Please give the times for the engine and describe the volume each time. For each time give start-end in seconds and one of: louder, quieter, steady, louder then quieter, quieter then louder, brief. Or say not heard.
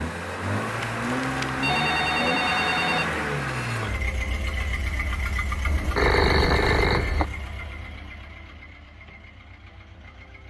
0.0-10.4 quieter.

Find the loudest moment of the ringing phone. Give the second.
6 s.